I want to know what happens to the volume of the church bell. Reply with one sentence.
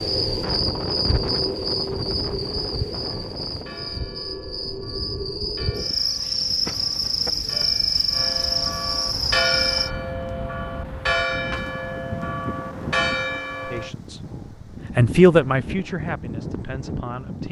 The loudness of the church bell goes up.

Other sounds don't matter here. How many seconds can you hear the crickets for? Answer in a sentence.
The crickets can be heard for 10 seconds in total.